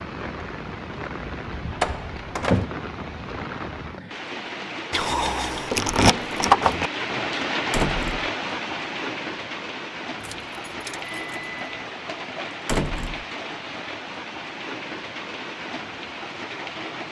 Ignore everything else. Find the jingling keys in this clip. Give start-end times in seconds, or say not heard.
4.9-6.9, 10.2-11.7.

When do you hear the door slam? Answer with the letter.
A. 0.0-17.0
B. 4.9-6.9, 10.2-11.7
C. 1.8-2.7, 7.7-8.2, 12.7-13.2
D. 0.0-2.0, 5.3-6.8
C.